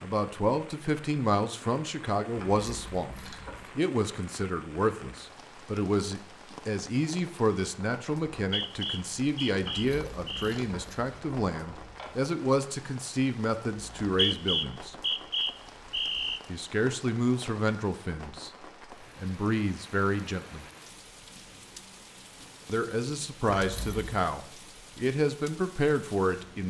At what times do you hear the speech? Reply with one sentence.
The speech can be heard from 0.0 to 14.9 s, from 16.4 to 18.5 s, from 19.1 to 20.6 s and from 22.6 to 26.6 s.